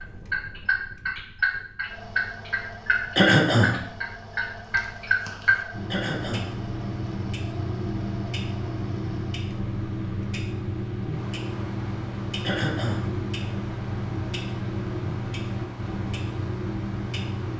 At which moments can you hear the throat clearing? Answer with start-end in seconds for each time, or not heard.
3.1-3.8, 5.9-6.5, 12.4-13.1.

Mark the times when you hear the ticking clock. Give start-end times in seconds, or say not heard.
0.0-17.5.